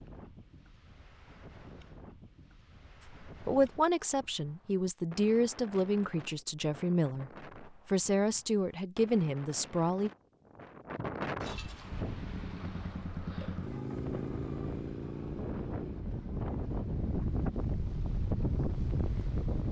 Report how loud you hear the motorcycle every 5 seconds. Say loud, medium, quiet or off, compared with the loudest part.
off, off, loud, medium.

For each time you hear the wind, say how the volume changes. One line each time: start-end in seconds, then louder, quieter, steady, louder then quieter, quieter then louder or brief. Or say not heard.
0.0-19.6 louder.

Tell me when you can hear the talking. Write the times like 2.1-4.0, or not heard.
3.2-10.1.